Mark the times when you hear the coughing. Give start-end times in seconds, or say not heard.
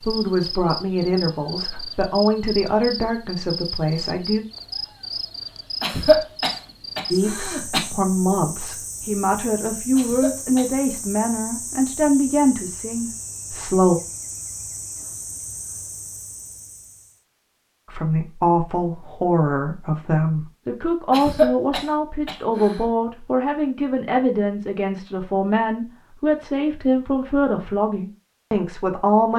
5.8-7.8, 9.9-10.7, 21.1-22.8.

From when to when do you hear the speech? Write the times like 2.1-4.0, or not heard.
0.0-4.4, 7.1-14.0, 17.9-29.3.